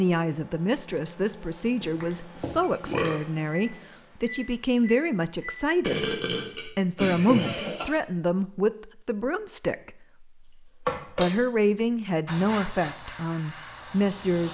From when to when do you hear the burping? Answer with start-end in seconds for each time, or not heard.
1.8-3.2, 5.8-7.8, 10.8-11.3.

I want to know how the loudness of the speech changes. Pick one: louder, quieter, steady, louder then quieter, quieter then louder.
steady.